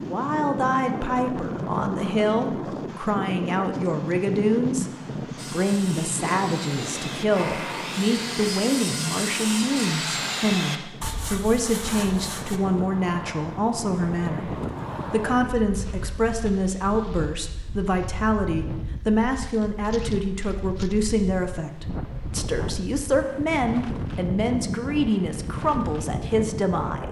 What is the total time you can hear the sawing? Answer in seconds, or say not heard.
7 s.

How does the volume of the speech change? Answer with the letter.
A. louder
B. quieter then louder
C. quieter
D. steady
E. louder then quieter
D.